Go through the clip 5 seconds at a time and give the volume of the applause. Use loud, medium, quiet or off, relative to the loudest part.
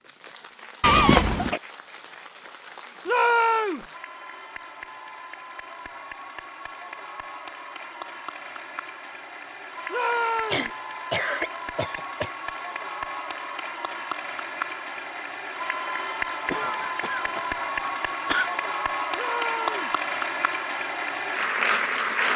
quiet, quiet, medium, loud, loud.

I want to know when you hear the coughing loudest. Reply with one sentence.
The volume of the coughing peaks at 1 second.